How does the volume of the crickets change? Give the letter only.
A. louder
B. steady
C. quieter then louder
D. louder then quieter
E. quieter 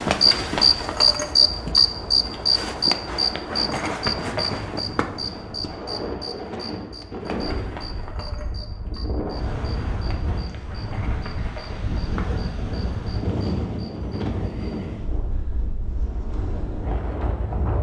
E.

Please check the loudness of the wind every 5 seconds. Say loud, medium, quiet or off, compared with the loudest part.
medium, loud, loud, loud.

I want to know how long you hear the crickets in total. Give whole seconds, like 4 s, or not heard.
15 s.